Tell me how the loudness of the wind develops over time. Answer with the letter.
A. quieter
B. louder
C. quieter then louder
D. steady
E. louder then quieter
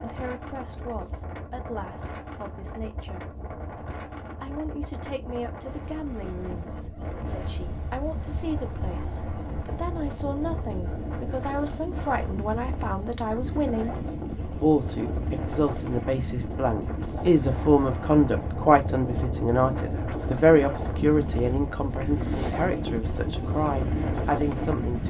B.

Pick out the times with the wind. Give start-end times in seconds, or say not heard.
0.0-25.0.